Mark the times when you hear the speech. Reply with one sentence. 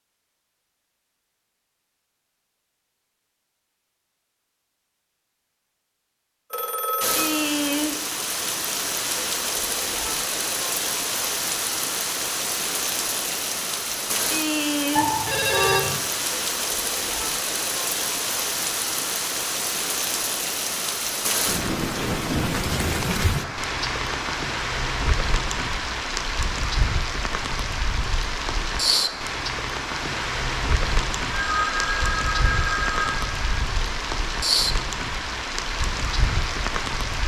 The speech can't be heard in this clip.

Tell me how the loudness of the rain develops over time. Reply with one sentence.
The loudness of the rain stays about the same.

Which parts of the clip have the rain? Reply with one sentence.
The rain can be heard from 7.0 to 37.2 s.